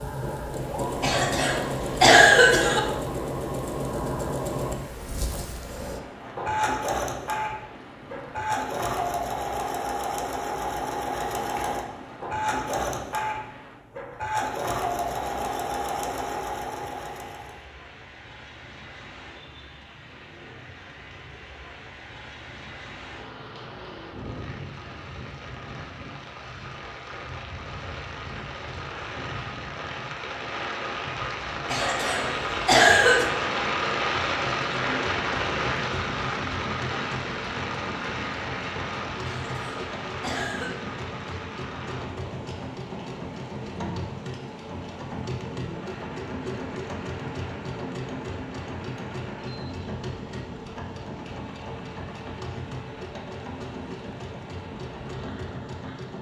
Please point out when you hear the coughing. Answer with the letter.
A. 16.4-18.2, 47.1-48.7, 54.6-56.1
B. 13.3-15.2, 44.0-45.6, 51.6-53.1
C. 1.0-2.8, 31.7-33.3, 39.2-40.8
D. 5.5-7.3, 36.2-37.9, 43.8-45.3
C.